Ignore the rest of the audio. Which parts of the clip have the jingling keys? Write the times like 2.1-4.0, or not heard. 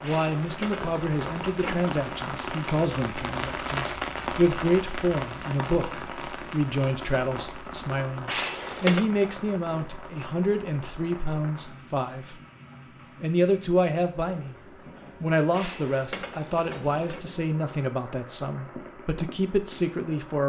0.0-1.9, 8.2-9.1, 15.5-17.2.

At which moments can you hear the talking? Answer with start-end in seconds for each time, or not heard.
0.0-12.4, 13.2-14.6, 15.2-20.4.